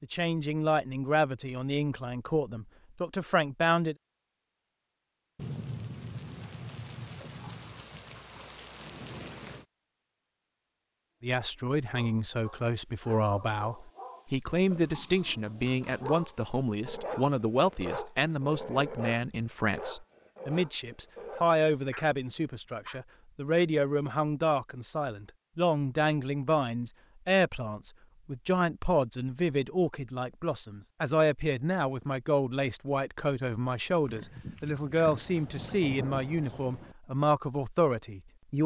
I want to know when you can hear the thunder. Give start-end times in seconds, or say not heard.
5.3-9.7, 35.0-37.0.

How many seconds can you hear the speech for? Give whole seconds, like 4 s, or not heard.
31 s.